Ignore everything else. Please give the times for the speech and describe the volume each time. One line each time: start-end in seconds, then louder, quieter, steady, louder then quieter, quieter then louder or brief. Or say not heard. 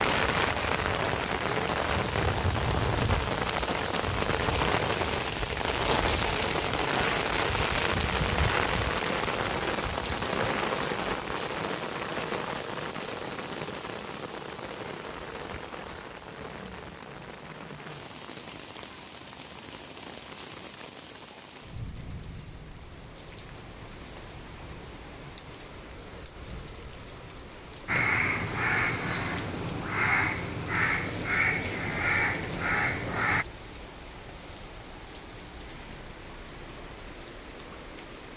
not heard.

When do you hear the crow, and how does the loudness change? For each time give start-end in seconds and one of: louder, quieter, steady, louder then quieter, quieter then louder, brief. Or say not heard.
27.9-33.5 steady.